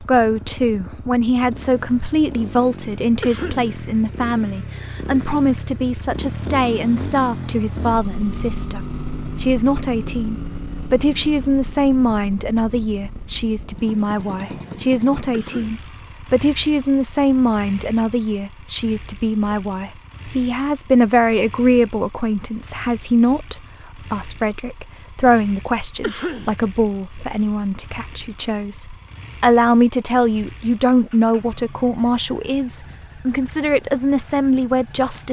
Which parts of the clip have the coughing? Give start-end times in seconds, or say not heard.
3.2-3.7, 15.3-15.8, 26.0-26.6.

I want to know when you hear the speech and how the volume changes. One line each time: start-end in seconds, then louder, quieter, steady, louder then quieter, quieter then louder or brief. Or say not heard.
0.0-35.2 steady.